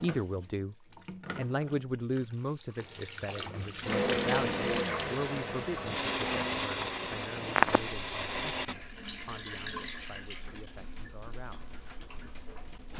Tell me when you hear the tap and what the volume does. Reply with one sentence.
You can hear the tap from 0.0 to 12.9 s, getting louder then quieter.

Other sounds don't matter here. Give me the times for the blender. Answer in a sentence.
You can hear the blender from 3.8 to 8.8 s.